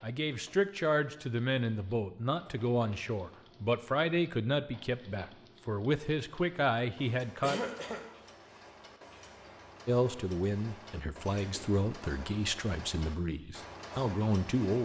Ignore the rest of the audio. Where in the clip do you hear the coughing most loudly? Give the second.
8 s.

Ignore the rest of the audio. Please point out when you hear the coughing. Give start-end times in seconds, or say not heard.
2.5-3.1, 7.4-8.1, 11.2-11.8.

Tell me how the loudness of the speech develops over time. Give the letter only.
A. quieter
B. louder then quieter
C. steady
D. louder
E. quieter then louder
C.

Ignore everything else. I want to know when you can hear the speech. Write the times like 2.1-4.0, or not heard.
0.0-7.6, 9.8-14.8.